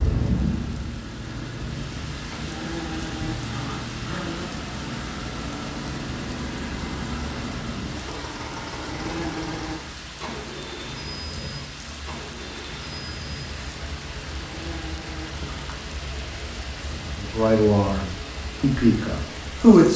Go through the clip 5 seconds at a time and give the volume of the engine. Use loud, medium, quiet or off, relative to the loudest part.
loud, loud, medium, medium.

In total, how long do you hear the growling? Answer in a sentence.
You can hear the growling for 4 seconds altogether.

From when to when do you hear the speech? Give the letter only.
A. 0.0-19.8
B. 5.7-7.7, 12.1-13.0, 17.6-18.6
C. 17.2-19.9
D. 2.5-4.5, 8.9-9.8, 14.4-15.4
C.